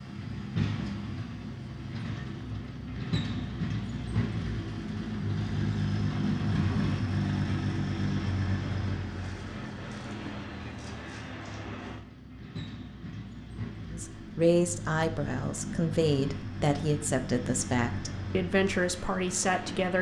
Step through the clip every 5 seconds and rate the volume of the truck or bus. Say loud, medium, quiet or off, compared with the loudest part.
loud, loud, medium, medium.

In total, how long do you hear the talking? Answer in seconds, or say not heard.
6 s.